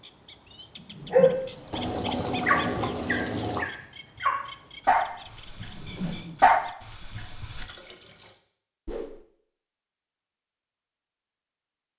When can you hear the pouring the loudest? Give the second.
3 s.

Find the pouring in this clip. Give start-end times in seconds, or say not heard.
1.7-3.6, 7.4-8.3.